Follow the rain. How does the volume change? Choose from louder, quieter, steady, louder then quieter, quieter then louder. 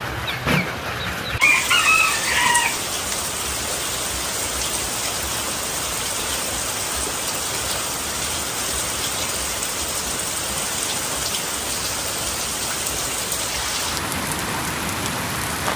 steady.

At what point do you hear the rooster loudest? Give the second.
2 s.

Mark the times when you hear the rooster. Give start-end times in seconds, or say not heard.
0.2-3.2.